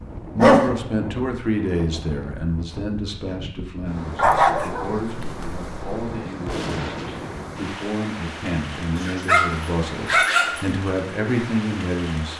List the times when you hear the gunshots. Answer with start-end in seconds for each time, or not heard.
6.5-7.7.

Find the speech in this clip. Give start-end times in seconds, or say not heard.
0.3-12.3.